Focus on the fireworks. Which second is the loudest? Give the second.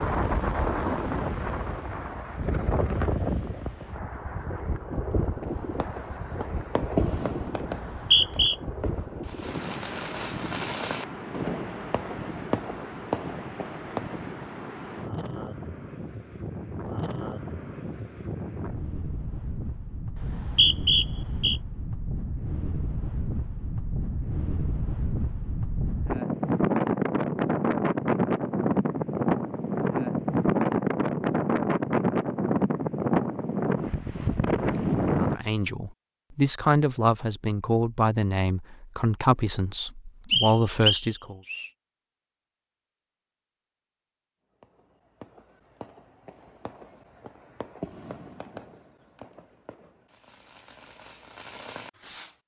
7 s.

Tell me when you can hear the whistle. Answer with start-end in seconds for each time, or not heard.
7.7-8.6, 20.1-21.6, 40.3-41.7.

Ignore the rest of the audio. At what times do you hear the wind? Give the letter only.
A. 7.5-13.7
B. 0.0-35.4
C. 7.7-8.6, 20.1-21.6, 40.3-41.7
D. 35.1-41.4
B.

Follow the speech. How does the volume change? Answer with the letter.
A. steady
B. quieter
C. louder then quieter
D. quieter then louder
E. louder
A.